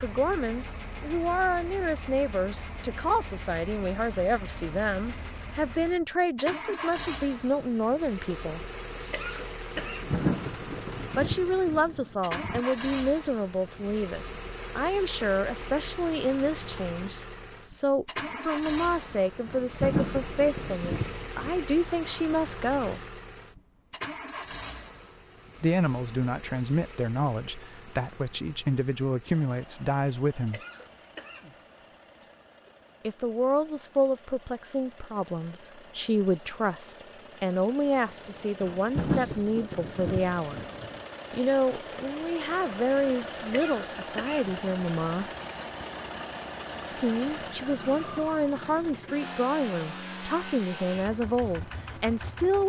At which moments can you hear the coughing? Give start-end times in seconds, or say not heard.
8.9-10.2, 30.4-32.7, 43.4-44.6.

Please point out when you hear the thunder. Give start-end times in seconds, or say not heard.
9.4-12.6, 19.1-21.6, 38.2-41.0.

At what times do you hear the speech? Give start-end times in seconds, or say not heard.
0.0-8.7, 11.2-23.0, 25.6-30.6, 33.0-40.6, 41.3-45.3, 46.9-52.6.